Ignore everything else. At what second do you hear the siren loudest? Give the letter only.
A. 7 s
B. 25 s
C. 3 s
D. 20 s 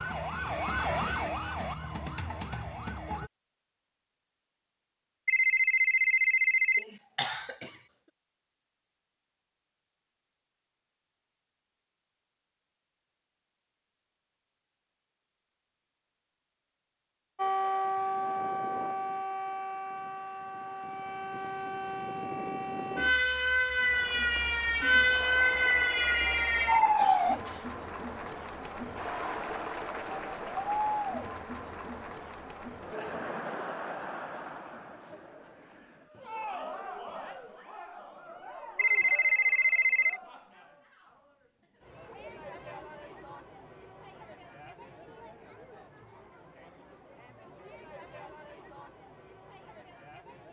B.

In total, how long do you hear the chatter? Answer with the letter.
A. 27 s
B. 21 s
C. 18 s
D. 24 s
A.